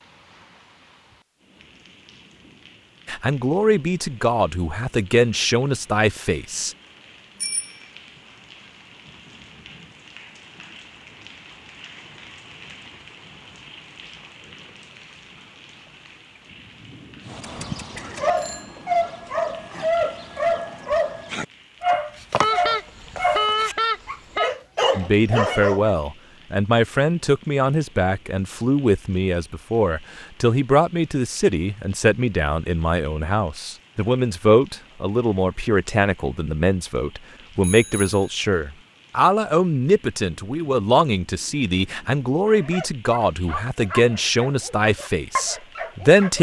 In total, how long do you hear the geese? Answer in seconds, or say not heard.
2 s.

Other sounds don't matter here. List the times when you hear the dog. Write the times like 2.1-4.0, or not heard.
17.3-25.9, 42.5-46.3.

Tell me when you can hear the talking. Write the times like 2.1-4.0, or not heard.
3.0-6.8, 24.9-46.3.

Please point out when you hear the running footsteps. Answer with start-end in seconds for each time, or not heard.
not heard.